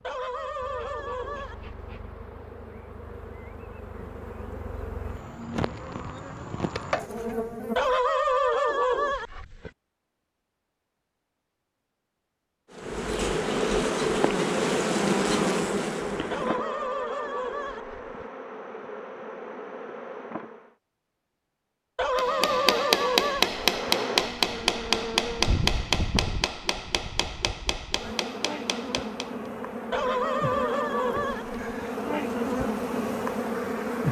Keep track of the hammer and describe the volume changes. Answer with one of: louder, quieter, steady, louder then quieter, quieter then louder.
quieter.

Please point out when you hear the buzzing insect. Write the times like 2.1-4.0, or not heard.
0.0-8.0, 12.8-20.8, 23.4-34.0.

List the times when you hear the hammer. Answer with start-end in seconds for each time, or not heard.
22.1-29.3.